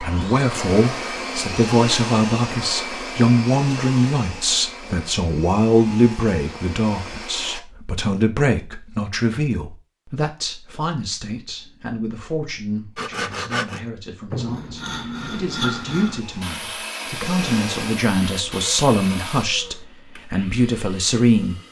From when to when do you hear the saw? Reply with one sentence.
You can hear the saw from 12.9 to 19.4 s.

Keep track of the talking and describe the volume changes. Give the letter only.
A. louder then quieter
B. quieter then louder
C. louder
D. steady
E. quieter
B.